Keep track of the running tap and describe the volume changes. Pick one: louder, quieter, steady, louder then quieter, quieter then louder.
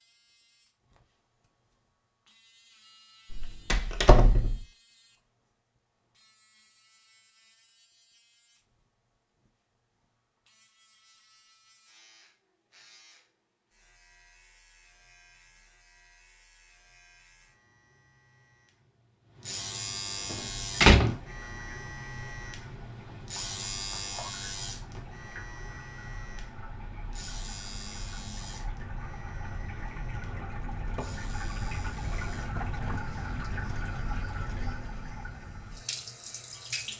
louder.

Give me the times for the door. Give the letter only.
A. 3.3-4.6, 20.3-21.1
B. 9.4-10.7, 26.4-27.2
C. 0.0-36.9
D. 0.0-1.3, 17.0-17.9
A.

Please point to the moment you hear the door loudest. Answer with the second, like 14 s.
21 s.